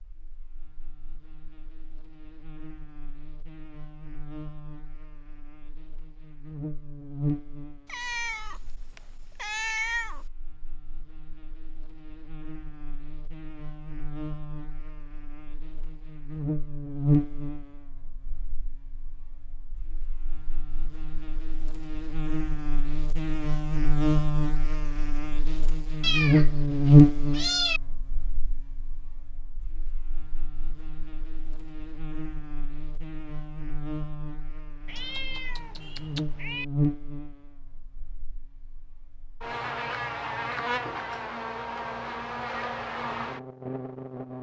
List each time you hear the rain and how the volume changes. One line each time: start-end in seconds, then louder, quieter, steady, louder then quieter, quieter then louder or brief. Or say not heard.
not heard.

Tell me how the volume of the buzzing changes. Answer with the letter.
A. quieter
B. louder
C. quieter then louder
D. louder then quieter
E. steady
D.